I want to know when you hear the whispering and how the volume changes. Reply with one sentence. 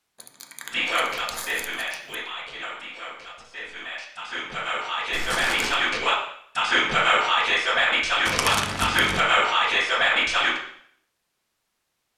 The whispering can be heard from 0.7 to 10.6 s, getting louder.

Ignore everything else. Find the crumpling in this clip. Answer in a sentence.
You can hear the crumpling from 0.1 to 2.1 s, from 5.1 to 5.9 s and from 8.2 to 9.2 s.